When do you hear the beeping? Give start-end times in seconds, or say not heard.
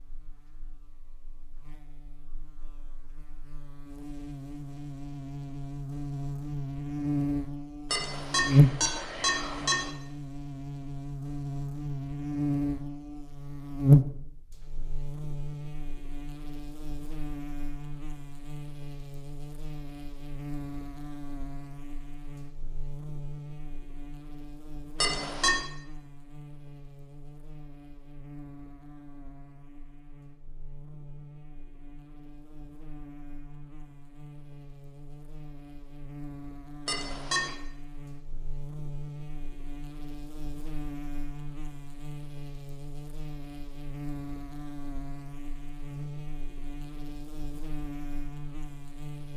7.9-9.9, 25.0-25.6, 36.9-37.5.